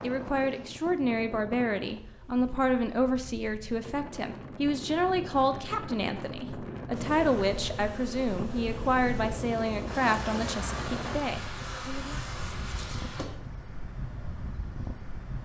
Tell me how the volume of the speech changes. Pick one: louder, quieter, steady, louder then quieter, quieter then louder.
steady.